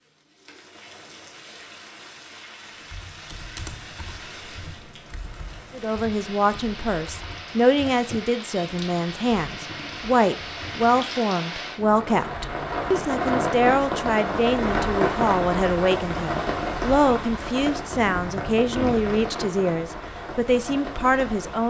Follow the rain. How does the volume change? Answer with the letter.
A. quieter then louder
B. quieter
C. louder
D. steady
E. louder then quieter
E.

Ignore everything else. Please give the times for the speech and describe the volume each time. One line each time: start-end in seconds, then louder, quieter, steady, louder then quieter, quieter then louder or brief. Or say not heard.
5.7-21.6 steady.